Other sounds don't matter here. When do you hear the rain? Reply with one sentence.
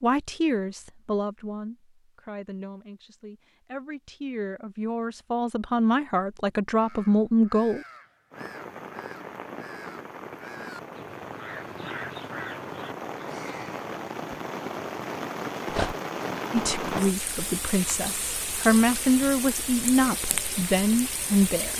You can hear the rain from 8.3 to 21.7 s.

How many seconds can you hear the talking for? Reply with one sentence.
You can hear the talking for 13 seconds altogether.